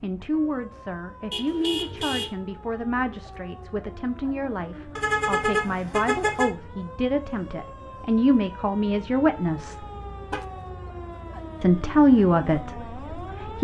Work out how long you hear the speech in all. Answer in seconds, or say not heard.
12 s.